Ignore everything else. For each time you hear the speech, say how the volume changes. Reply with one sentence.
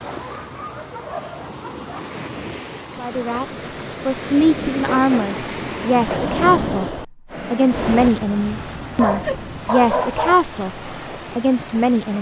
You can hear the speech from 3.0 to 12.1 s, at a steady volume.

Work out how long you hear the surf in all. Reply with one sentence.
You can hear the surf for 12 seconds altogether.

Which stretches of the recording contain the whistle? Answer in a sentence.
You can't hear the whistle here.